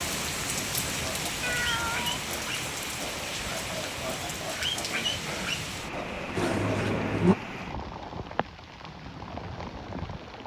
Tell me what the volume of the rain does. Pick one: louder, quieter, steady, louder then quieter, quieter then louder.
quieter.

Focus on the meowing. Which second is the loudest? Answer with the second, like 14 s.
7 s.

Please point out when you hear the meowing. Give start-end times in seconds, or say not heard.
1.4-2.1, 6.3-7.3.